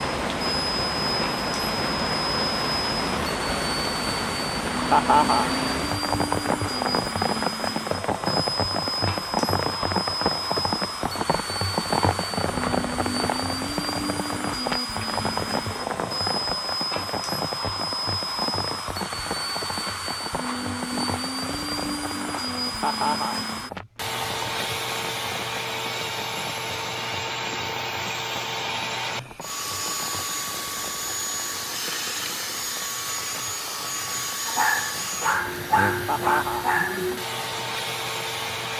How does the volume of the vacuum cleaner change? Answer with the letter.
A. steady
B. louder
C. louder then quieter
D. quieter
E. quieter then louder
A.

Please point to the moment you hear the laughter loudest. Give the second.
5 s.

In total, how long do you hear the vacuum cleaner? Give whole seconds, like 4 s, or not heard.
39 s.